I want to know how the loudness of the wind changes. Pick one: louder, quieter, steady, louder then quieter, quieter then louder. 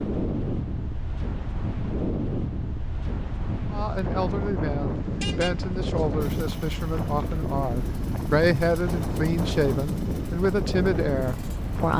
steady.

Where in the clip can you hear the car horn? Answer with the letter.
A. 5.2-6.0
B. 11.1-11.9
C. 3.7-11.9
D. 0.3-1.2
A.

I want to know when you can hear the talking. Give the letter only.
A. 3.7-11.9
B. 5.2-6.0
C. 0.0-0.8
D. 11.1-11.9
A.